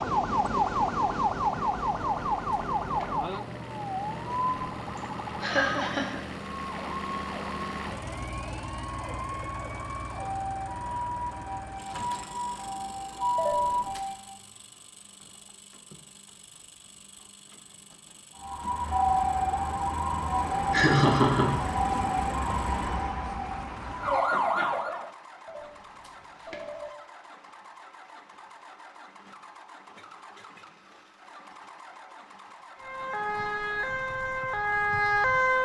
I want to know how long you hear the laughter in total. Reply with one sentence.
The laughter can be heard for 2 seconds in total.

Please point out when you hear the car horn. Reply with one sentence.
You can't hear the car horn here.